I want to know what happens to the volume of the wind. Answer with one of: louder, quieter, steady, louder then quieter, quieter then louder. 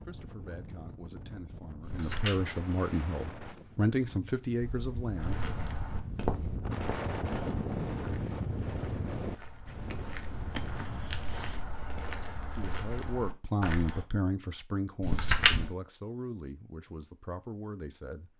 louder then quieter.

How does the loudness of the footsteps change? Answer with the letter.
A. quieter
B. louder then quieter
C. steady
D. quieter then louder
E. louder
D.